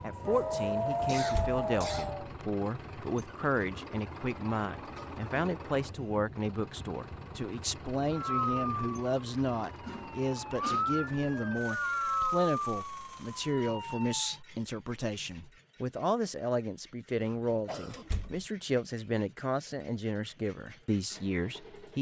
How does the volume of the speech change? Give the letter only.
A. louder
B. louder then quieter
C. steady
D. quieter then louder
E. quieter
C.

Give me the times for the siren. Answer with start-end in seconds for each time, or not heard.
0.0-2.3, 8.1-14.4.